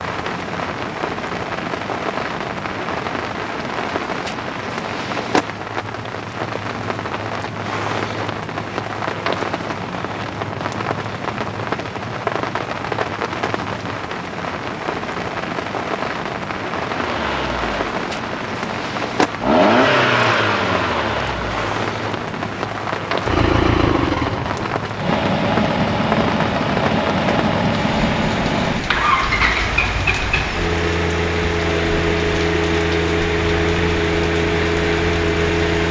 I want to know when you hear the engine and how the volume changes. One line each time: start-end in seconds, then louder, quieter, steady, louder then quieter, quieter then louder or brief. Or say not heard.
16.8-35.8 steady.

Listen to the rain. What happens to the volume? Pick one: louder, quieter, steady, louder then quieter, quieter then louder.
steady.